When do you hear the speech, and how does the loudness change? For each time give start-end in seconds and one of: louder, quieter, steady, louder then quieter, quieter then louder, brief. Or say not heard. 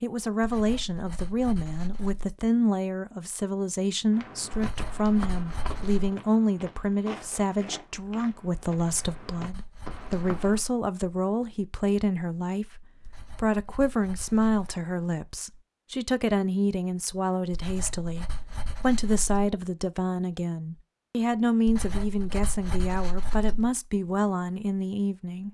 0.0-25.4 steady.